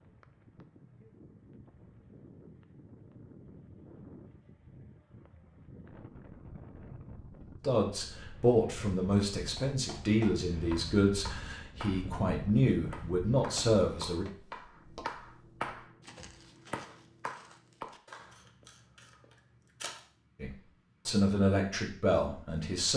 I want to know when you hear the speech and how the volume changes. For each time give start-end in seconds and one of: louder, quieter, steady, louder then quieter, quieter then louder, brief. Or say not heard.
7.6-14.2 steady
20.4-22.9 brief.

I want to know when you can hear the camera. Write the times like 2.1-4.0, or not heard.
18.1-20.1.